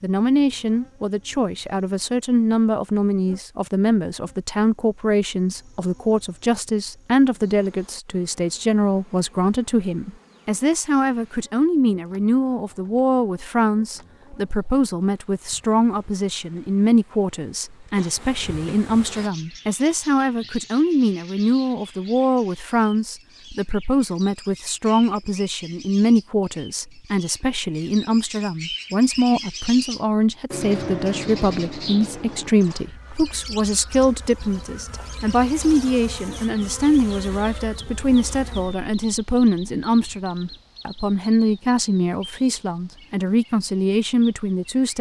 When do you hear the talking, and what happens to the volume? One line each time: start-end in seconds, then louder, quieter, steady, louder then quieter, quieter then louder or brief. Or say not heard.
0.0-44.9 steady.